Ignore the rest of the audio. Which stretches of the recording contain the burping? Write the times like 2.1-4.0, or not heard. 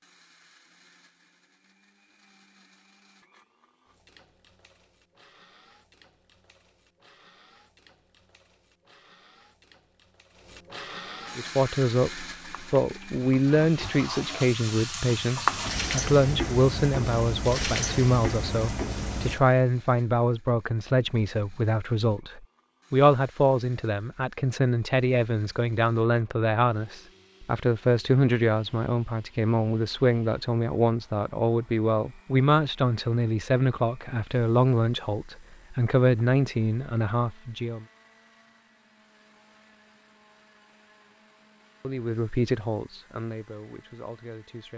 not heard.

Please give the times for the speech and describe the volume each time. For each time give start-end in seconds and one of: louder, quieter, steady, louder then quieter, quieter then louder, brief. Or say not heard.
11.3-37.9 steady
41.8-44.7 brief.